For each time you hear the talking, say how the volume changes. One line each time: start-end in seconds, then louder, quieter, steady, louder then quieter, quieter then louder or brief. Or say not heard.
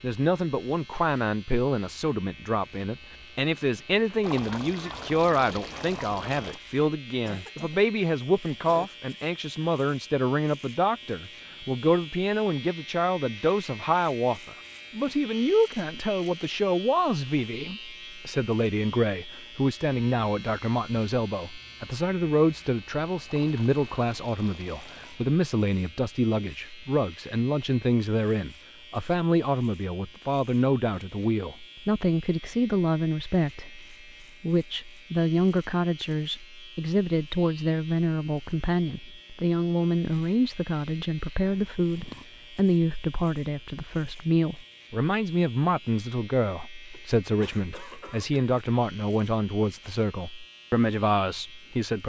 0.0-52.0 steady.